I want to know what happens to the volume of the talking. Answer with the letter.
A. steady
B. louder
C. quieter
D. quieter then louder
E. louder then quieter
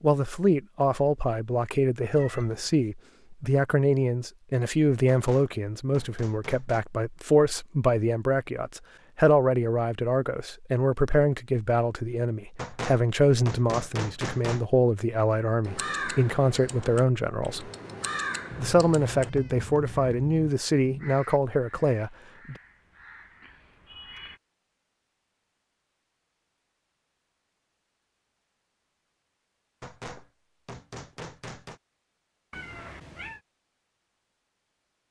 A.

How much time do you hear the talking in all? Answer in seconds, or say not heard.
22 s.